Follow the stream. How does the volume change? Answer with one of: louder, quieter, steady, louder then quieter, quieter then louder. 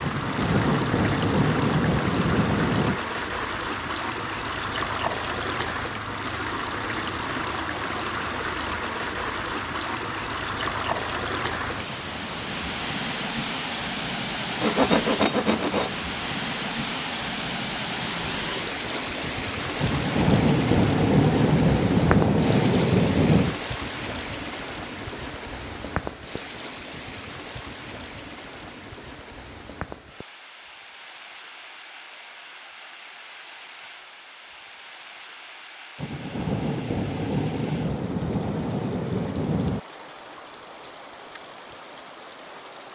quieter.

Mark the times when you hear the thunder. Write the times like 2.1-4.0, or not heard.
0.0-3.0, 19.8-23.6, 36.0-39.8.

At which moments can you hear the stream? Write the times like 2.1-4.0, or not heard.
0.0-42.9.